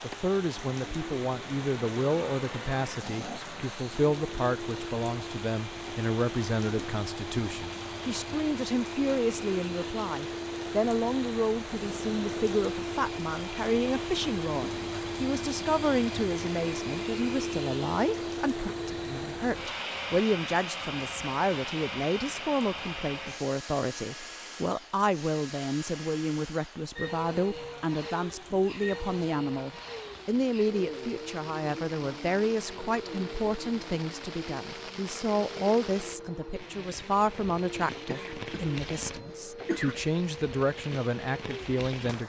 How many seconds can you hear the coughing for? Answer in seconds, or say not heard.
2 s.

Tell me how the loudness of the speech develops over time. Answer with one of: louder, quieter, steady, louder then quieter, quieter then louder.
steady.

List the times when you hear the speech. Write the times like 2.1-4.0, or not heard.
0.0-42.2.